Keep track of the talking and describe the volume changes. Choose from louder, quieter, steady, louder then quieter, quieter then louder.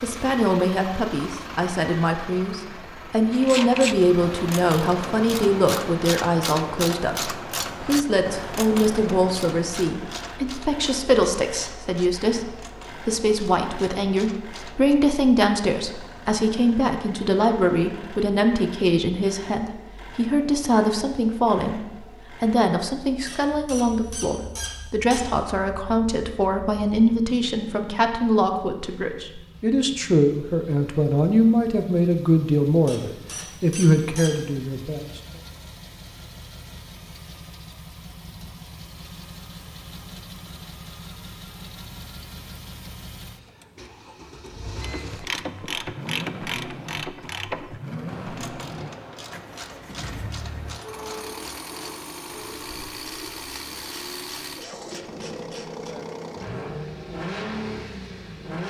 steady.